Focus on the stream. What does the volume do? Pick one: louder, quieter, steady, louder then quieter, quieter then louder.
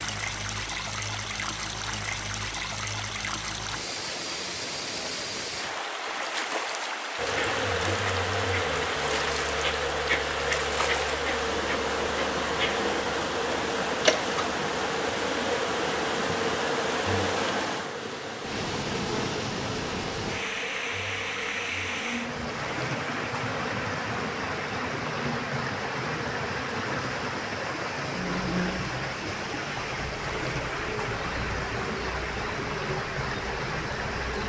steady.